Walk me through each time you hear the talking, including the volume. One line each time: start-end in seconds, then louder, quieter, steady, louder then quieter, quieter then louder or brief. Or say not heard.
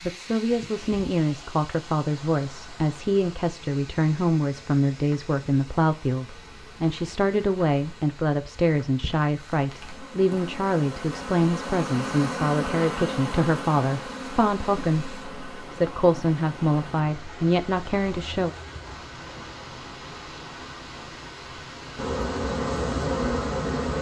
0.1-18.6 steady.